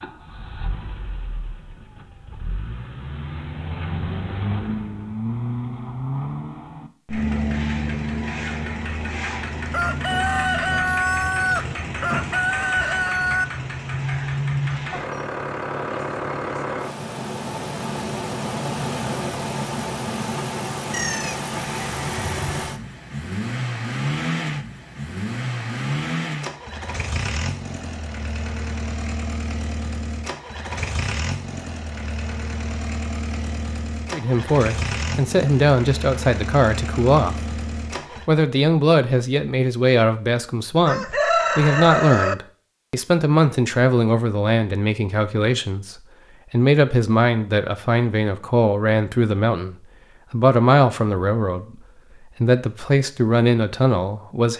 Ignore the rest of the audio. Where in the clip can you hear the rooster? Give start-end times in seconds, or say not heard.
9.7-13.4, 20.9-22.6, 40.9-42.4.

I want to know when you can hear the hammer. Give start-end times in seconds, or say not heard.
not heard.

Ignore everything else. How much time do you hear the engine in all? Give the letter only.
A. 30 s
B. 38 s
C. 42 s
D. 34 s
B.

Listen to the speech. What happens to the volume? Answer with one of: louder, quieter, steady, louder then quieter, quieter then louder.
steady.